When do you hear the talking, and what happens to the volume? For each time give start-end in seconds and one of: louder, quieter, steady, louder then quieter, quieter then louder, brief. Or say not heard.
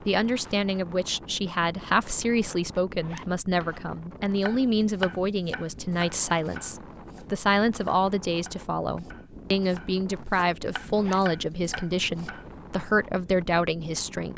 0.1-14.3 steady.